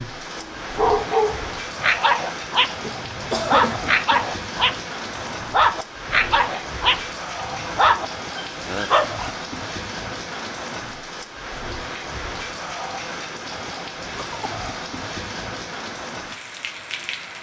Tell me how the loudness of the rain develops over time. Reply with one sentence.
The loudness of the rain stays about the same.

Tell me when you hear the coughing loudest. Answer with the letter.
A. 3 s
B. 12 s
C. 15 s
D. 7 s
A.